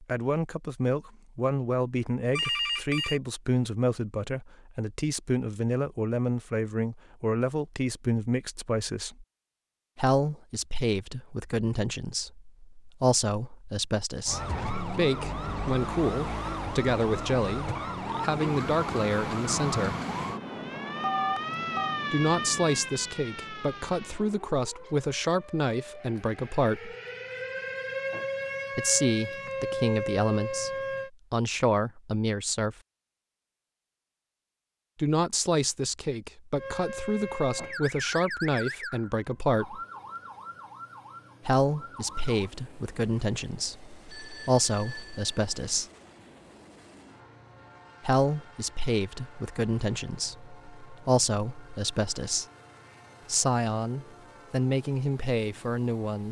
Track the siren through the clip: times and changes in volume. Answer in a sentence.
The siren can be heard from 14.2 to 31.1 s, getting quieter then louder; and from 36.5 to 42.5 s, getting quieter.